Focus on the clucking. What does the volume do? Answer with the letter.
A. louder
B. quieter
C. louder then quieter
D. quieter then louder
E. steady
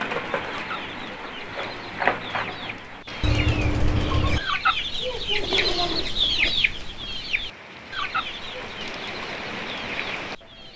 C.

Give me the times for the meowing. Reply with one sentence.
The meowing can be heard from 3.2 to 4.4 s.